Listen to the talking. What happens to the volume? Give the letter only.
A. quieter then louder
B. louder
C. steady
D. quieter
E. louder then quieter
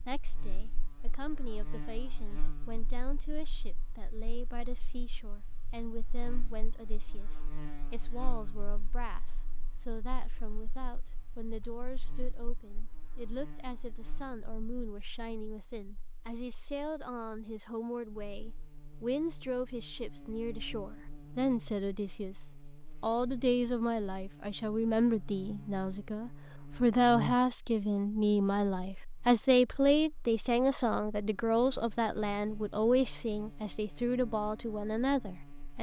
B.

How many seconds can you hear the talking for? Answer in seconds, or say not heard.
36 s.